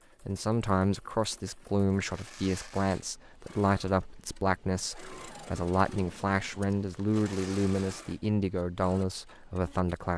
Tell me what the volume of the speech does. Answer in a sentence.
The volume of the speech stays about the same.